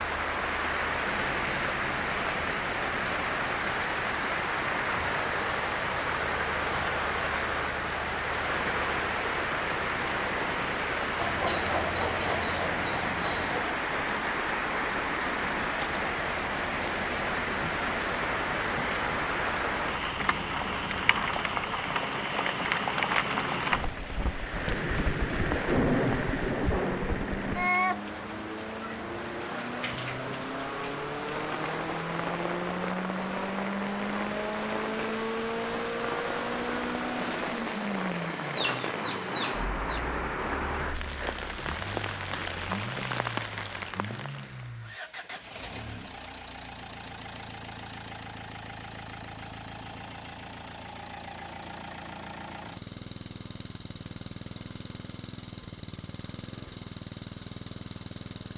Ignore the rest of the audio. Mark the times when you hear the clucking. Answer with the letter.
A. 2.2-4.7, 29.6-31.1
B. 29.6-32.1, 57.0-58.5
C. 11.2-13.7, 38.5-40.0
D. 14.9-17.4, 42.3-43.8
C.